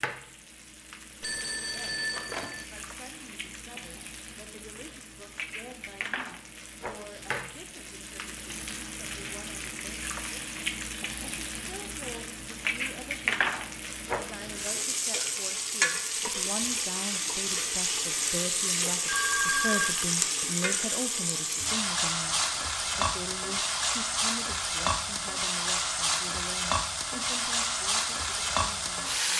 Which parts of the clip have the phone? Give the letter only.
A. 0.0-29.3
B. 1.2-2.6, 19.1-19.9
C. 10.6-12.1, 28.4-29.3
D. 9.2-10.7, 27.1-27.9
B.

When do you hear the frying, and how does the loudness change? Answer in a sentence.
The frying can be heard from 0.0 to 29.3 s, getting louder.